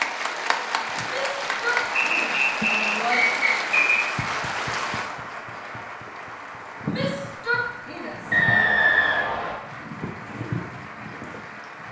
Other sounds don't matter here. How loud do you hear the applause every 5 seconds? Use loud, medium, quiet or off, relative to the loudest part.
loud, medium, medium.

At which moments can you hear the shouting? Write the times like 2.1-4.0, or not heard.
1.1-3.5, 6.8-8.7.